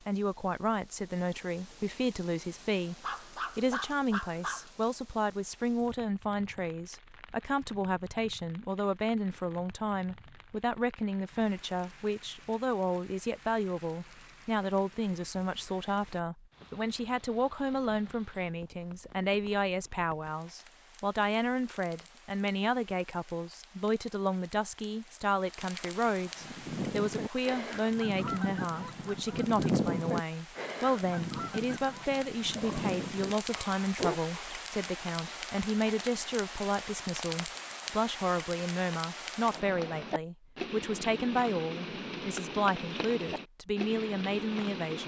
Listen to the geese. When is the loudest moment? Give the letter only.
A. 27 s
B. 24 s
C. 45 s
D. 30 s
D.